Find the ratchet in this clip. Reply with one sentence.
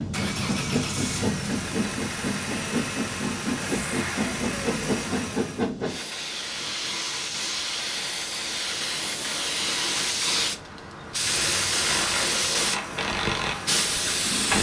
You can hear the ratchet from 11.8 to 14.5 s.